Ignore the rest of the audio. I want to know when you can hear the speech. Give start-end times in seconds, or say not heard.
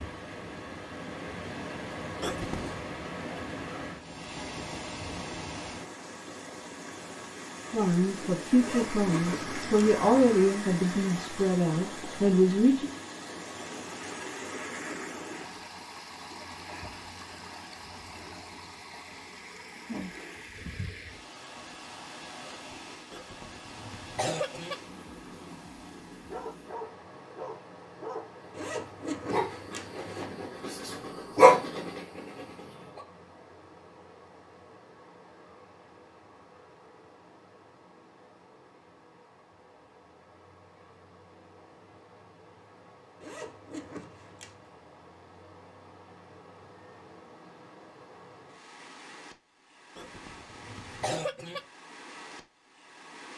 7.7-12.9.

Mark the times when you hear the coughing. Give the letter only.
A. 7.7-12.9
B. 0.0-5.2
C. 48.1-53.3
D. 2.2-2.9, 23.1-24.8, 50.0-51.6
D.